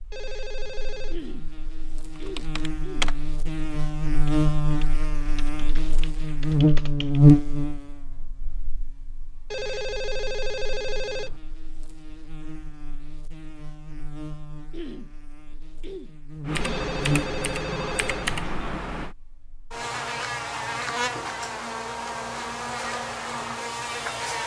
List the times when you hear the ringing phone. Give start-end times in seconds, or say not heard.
0.1-1.2, 9.5-11.4, 16.6-18.4.